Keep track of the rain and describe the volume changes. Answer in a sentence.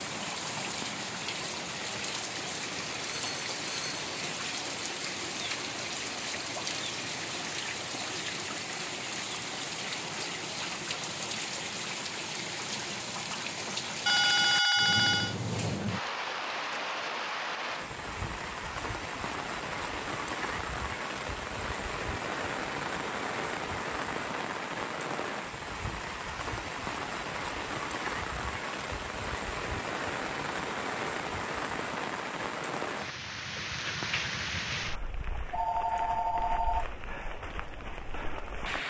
The loudness of the rain stays about the same.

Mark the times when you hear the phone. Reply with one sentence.
The phone can be heard from 3.0 to 4.1 s, from 14.1 to 15.3 s and from 35.5 to 36.9 s.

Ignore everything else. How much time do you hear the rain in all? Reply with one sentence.
You can hear the rain for 39 seconds altogether.